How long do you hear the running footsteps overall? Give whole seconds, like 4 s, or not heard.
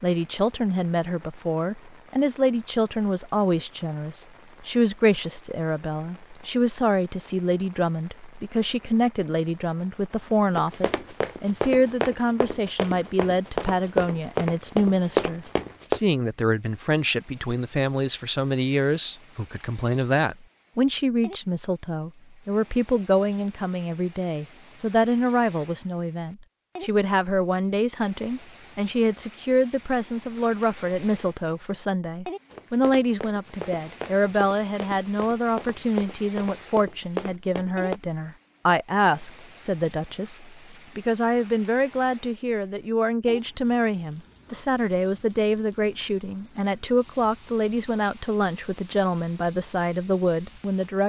11 s.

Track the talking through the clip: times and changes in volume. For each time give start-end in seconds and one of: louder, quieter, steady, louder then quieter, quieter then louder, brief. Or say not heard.
0.0-51.0 steady.